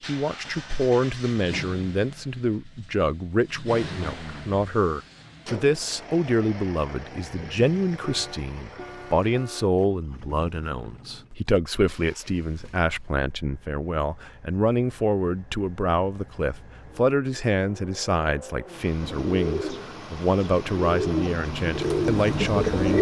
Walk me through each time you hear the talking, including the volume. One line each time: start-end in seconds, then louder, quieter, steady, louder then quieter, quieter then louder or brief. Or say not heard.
0.1-22.9 steady.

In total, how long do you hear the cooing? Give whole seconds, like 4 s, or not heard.
4 s.